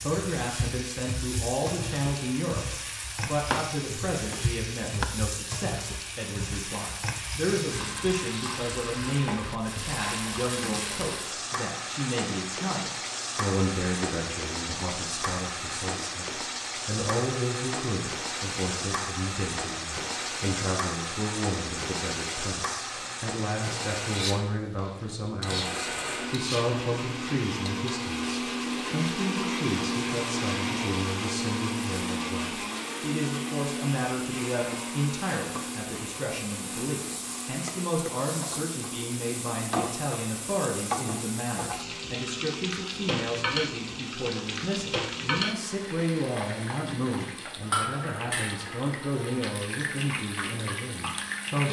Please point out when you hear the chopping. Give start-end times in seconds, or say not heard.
3.3-3.7, 4.3-5.0.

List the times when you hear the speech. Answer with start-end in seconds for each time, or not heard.
0.0-51.6.